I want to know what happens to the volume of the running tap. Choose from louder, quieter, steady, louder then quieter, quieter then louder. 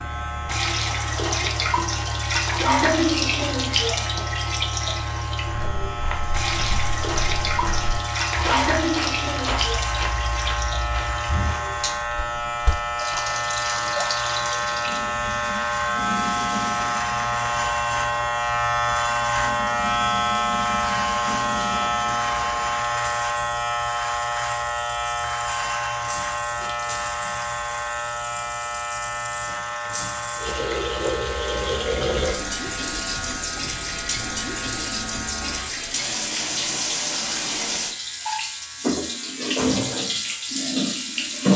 quieter then louder.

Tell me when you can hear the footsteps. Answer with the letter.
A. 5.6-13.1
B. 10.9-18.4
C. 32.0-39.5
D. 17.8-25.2
A.